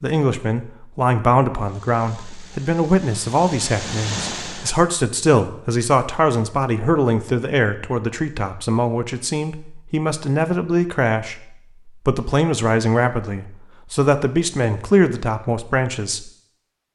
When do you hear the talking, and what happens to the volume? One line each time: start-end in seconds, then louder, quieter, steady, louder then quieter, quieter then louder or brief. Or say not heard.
0.0-16.3 steady.